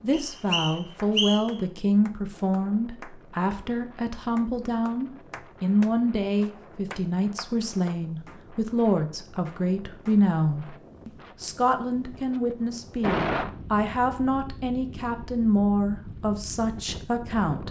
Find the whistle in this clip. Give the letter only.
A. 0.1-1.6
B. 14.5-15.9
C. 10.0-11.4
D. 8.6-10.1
A.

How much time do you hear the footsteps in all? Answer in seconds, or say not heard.
not heard.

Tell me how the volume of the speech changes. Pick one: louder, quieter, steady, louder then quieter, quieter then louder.
steady.